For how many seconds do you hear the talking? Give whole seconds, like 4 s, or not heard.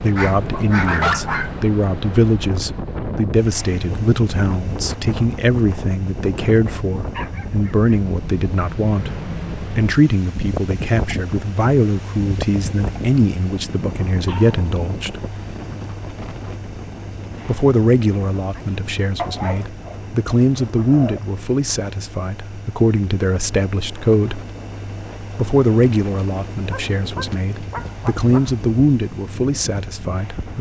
27 s.